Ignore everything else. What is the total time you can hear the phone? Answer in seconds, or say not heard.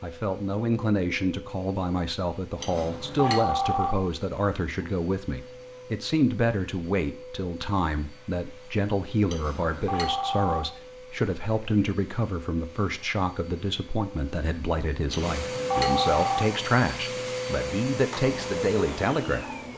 4 s.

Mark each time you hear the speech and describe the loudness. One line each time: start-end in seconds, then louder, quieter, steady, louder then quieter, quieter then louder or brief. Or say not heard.
0.0-19.4 steady.